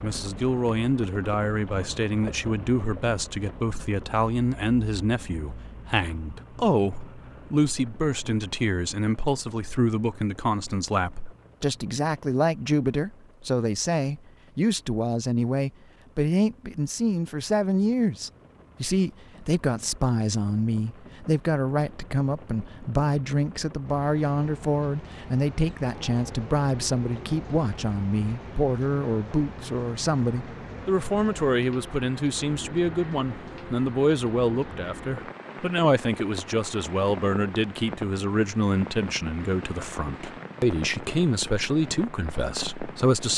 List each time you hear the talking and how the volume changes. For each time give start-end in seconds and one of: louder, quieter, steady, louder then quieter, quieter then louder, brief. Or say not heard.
0.0-43.3 steady.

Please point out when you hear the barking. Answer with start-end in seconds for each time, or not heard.
not heard.